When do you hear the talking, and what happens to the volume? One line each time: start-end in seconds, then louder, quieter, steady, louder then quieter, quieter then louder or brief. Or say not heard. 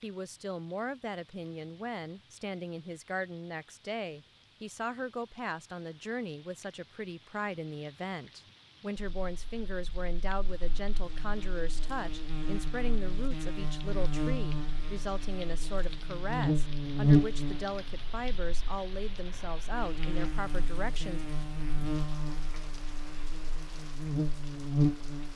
0.0-21.2 steady.